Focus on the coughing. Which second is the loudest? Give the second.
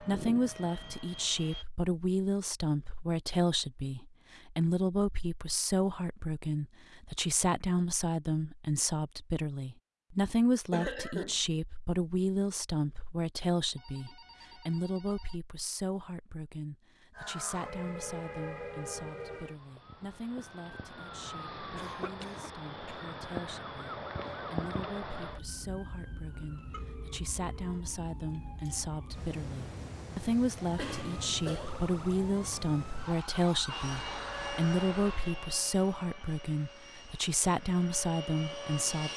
11 s.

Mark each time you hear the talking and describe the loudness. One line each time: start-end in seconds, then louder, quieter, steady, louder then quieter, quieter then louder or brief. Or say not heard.
0.0-39.1 quieter then louder.